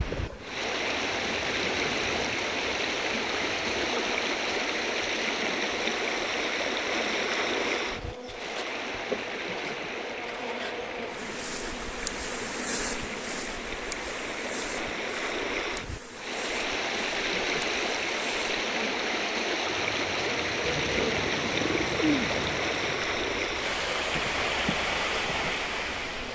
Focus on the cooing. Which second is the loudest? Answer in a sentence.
The loudest moment of the cooing is at 22 seconds.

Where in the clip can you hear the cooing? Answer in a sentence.
You can hear the cooing from 20.6 to 22.6 s.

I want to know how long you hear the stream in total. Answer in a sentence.
The stream can be heard for 26 seconds in total.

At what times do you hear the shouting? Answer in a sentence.
You can't hear the shouting here.